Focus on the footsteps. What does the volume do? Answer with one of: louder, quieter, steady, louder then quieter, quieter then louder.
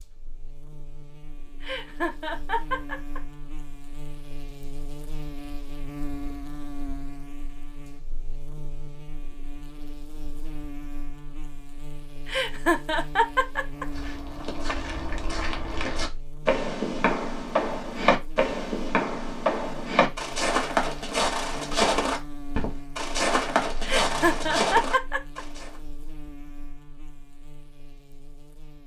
louder.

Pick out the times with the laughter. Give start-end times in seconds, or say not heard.
1.6-3.2, 12.2-13.8, 23.8-25.4.